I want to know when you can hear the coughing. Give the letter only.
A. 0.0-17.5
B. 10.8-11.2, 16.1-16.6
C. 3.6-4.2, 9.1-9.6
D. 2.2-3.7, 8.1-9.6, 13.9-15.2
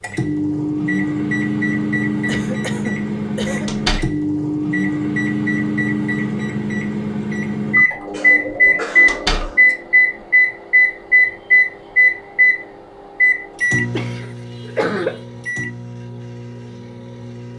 D.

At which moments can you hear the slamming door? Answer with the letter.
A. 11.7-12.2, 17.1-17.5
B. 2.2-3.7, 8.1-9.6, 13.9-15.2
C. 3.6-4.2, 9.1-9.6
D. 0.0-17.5
C.